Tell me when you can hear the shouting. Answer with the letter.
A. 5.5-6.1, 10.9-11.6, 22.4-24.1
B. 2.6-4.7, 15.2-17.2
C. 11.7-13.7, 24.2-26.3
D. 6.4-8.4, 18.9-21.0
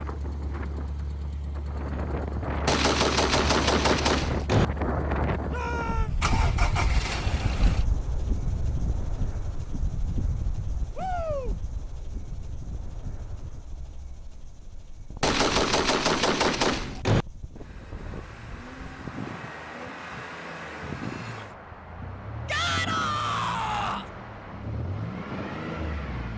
A.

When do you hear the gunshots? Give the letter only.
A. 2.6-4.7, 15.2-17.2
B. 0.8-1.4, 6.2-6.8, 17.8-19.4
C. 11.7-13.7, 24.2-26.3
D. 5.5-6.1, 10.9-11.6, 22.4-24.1
A.